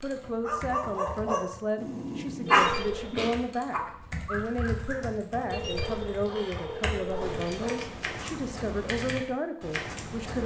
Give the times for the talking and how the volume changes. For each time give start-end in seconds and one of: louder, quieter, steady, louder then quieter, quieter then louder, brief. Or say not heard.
0.0-10.4 steady.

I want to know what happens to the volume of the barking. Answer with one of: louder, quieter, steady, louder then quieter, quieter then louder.
louder then quieter.